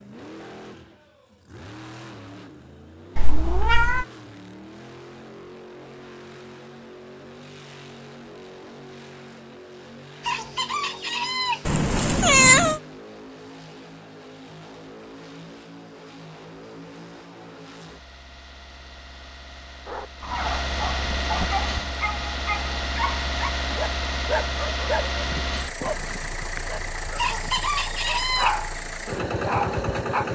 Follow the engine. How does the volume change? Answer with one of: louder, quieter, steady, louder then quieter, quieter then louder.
louder.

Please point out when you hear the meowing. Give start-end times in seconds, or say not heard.
3.1-4.0, 11.7-12.8, 25.9-27.1.